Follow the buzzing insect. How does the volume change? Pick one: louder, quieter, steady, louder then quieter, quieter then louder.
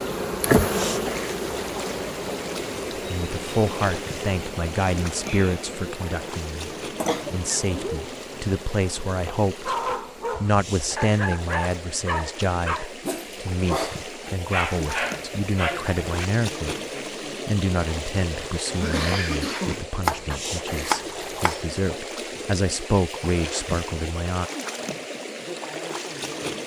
quieter.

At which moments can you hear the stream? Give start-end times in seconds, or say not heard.
0.0-26.6.